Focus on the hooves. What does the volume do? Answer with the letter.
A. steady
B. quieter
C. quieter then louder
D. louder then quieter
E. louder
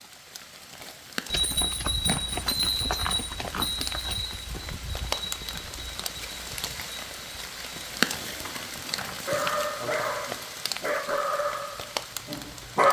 B.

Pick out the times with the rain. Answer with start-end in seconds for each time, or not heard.
0.0-12.8.